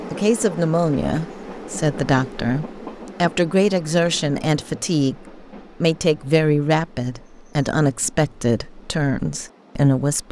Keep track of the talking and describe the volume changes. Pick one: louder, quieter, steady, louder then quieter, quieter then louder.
steady.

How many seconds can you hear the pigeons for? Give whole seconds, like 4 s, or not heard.
not heard.